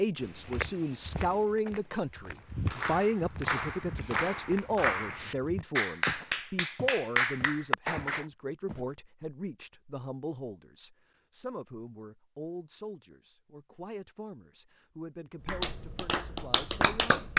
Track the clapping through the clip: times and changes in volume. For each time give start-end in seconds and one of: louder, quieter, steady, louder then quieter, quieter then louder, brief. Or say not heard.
2.6-8.2 louder
15.4-17.3 brief.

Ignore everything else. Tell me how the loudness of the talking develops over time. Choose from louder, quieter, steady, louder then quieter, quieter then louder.
quieter.